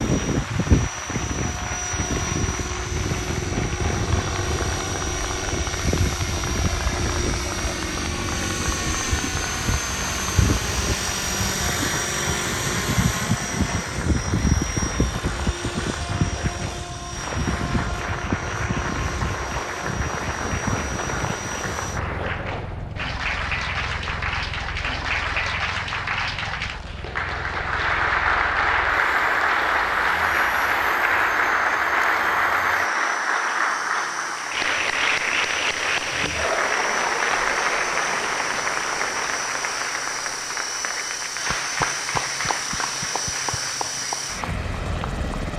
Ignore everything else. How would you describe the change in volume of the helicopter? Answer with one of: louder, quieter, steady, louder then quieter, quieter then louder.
quieter then louder.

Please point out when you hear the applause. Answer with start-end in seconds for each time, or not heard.
0.0-45.5.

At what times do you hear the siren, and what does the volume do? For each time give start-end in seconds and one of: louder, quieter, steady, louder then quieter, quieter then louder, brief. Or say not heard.
not heard.